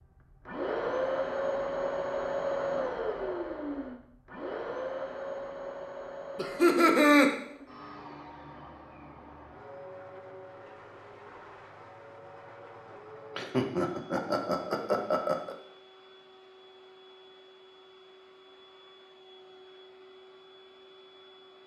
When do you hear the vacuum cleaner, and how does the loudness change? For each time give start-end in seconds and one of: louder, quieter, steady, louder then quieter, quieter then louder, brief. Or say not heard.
0.0-21.6 quieter.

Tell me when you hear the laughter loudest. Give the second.
7 s.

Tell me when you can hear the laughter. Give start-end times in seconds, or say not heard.
6.3-7.3, 13.3-15.6.